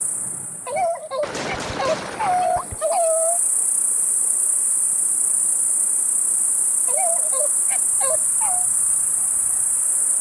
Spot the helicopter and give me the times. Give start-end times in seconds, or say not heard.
not heard.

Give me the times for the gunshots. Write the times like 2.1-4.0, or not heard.
1.2-2.9.